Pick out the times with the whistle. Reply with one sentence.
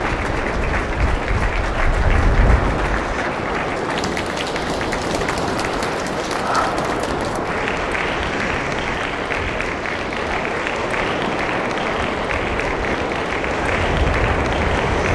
The whistle can't be heard in this clip.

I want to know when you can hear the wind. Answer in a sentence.
The wind can be heard from 0.0 to 15.1 s.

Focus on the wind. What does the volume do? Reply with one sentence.
The loudness of the wind stays about the same.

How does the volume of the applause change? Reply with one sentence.
The loudness of the applause stays about the same.